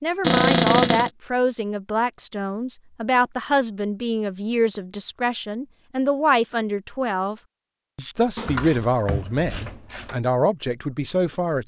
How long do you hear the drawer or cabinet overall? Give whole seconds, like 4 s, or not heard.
2 s.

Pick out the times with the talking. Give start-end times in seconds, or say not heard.
0.0-7.3, 8.0-11.6.